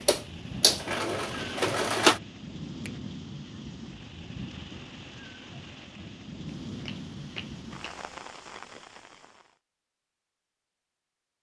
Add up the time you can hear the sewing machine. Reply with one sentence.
The sewing machine can be heard for 2 seconds in total.